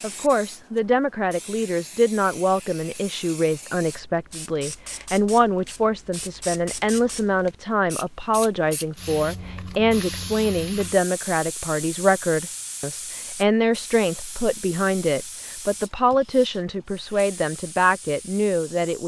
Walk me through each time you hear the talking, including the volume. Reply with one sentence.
The talking can be heard from 0.0 to 19.0 s, at a steady volume.